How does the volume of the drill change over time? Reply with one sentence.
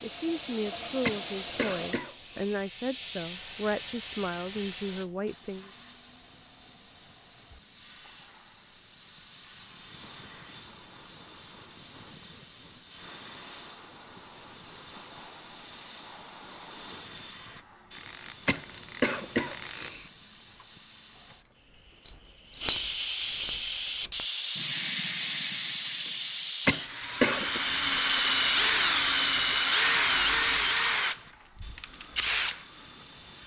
The volume of the drill goes down.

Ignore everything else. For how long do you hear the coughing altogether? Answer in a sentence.
The coughing can be heard for 4 seconds in total.